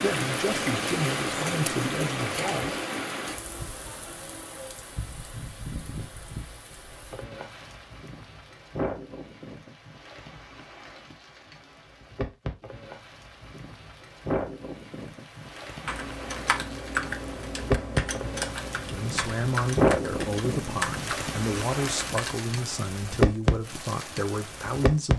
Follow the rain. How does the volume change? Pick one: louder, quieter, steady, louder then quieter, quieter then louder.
quieter then louder.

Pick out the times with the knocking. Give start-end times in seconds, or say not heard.
not heard.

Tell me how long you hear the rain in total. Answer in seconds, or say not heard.
25 s.